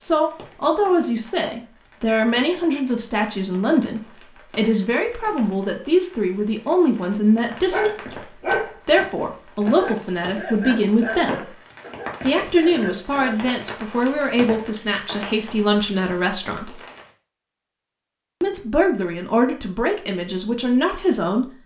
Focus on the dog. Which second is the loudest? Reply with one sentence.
The loudest moment of the dog is at 8 seconds.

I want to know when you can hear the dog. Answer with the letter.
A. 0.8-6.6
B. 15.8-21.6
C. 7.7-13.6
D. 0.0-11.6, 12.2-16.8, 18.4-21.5
C.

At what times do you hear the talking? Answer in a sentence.
You can hear the talking from 0.0 to 11.6 s, from 12.2 to 16.8 s and from 18.4 to 21.5 s.